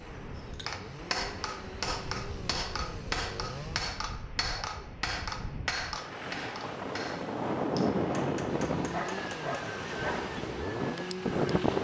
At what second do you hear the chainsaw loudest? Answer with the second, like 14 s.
11 s.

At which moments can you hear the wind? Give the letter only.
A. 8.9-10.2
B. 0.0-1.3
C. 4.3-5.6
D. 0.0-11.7
D.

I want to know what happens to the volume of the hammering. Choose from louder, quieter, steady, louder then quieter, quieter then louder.
quieter.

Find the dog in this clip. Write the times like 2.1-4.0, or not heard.
8.9-10.2.